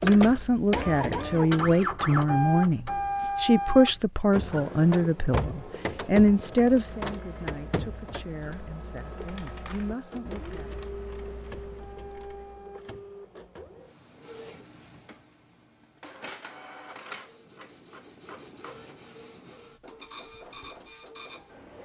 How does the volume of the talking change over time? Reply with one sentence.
The loudness of the talking goes down.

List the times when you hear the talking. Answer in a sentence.
The talking can be heard from 0.0 to 10.8 s.